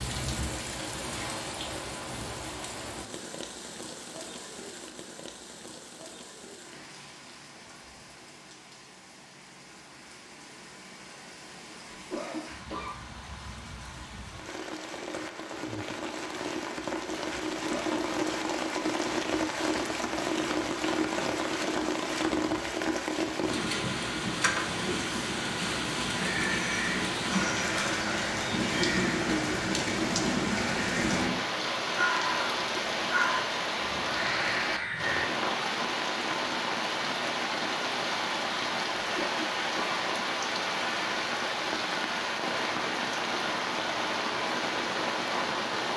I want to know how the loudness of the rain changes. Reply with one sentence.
The volume of the rain goes up.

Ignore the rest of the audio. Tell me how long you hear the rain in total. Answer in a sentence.
The rain can be heard for 46 seconds in total.